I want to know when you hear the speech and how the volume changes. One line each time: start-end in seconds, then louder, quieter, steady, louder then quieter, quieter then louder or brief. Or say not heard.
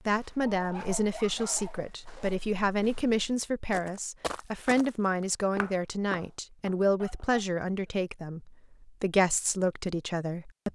0.1-10.7 steady.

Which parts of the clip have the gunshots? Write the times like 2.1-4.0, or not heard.
not heard.